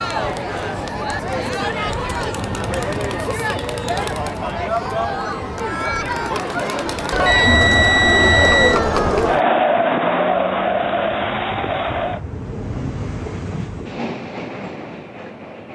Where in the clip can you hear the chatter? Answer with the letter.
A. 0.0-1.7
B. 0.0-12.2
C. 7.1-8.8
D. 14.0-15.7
B.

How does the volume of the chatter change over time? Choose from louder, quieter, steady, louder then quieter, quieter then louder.
louder.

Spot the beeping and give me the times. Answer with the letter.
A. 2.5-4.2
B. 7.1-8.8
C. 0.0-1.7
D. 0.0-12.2
B.